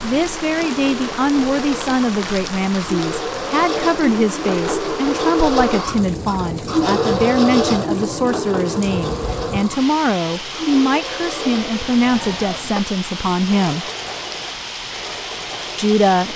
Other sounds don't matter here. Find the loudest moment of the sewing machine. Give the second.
7 s.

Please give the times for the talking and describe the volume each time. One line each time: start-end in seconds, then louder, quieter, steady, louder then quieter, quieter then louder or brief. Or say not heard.
0.0-13.9 steady
15.8-16.3 brief.